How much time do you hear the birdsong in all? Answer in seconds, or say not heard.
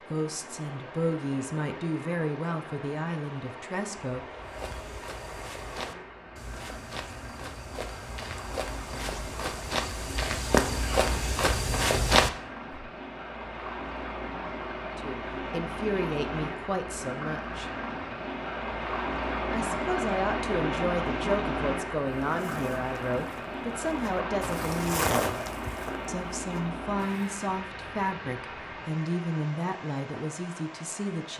not heard.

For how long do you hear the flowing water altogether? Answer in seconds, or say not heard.
31 s.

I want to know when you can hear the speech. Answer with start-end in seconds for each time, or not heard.
0.0-4.2, 14.9-17.7, 19.5-25.4, 26.1-31.3.